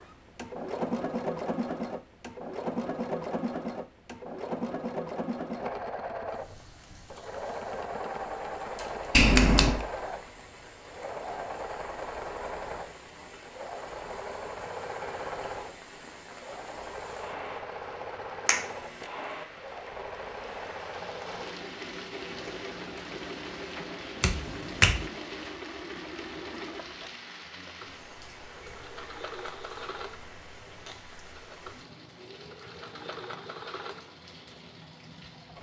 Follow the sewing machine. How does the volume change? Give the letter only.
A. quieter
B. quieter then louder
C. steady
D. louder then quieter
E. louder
A.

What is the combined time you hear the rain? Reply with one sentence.
The rain can be heard for 29 seconds in total.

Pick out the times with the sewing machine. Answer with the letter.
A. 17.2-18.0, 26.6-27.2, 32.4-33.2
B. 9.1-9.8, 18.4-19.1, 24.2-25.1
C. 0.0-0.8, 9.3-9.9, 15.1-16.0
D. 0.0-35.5
D.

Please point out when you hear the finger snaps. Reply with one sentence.
You can hear the finger snaps from 9.1 to 9.8 s, from 18.4 to 19.1 s and from 24.2 to 25.1 s.